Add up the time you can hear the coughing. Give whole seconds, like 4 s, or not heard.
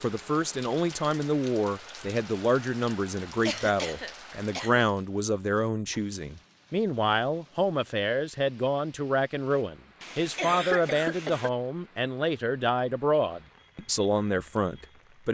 3 s.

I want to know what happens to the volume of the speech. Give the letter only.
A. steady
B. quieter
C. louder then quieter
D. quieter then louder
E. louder
A.